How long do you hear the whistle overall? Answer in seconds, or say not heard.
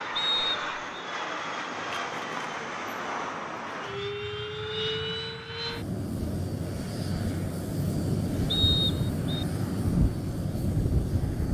2 s.